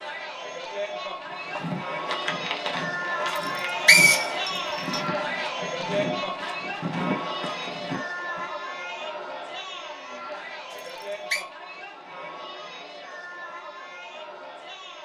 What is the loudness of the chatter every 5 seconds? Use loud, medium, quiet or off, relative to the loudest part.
loud, loud, medium.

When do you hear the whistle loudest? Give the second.
4 s.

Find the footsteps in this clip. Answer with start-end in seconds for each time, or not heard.
1.2-8.4.